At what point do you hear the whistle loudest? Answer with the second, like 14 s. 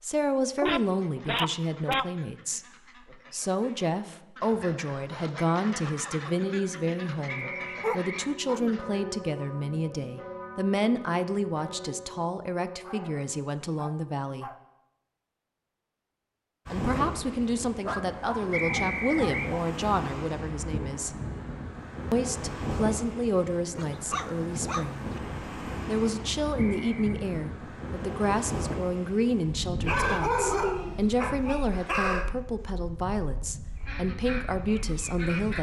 19 s.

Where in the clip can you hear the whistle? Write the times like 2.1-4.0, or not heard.
7.2-8.3, 18.5-19.6, 26.6-27.2.